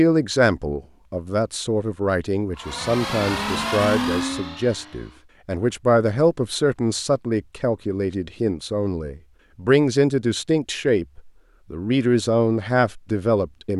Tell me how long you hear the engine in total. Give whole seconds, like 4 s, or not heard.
3 s.